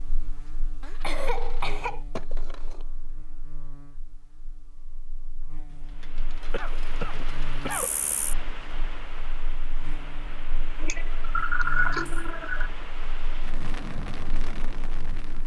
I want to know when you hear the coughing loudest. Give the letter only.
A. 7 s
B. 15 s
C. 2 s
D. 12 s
D.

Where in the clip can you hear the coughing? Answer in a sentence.
The coughing can be heard from 1.0 to 2.0 s, from 6.5 to 8.2 s and from 10.8 to 12.7 s.